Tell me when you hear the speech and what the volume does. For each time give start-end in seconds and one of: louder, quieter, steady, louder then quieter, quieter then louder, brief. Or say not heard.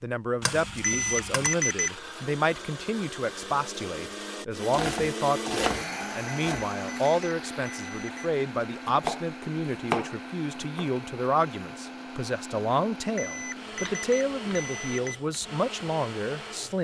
0.0-16.7 steady.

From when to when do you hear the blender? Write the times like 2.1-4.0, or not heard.
0.2-16.7.